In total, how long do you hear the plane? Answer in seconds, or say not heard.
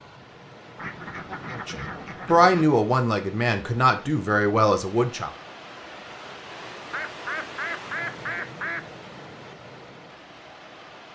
not heard.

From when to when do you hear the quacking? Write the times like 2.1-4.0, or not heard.
0.8-2.6, 6.9-8.8.